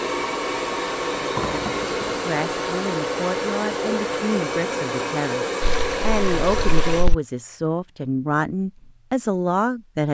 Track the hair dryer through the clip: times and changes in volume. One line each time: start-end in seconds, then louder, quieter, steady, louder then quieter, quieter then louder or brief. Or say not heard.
0.0-7.0 steady.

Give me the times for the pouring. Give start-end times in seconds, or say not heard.
1.4-2.2, 5.6-7.2.